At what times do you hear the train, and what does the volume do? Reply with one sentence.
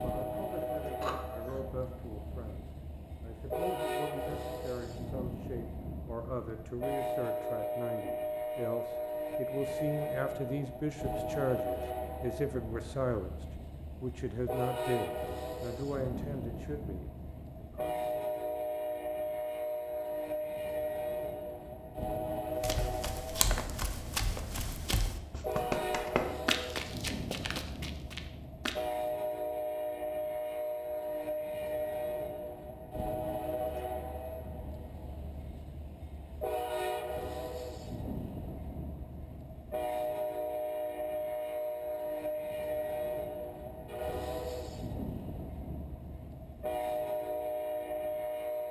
The train can be heard from 0.0 to 48.6 s, at a steady volume.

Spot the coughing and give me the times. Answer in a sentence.
You can hear the coughing from 1.0 to 1.6 s.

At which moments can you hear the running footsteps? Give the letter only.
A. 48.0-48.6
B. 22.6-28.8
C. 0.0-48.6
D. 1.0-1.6
B.